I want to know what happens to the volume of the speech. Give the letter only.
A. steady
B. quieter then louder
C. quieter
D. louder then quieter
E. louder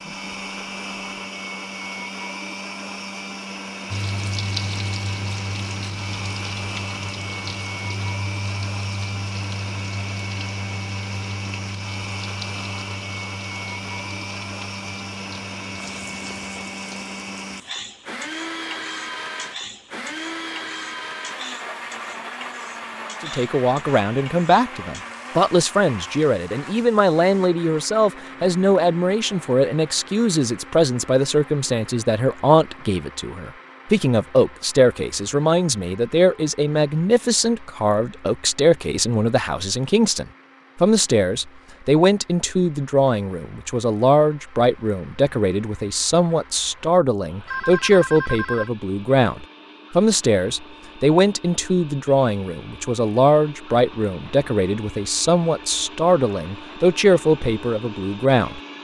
A.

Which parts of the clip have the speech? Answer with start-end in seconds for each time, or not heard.
23.2-58.6.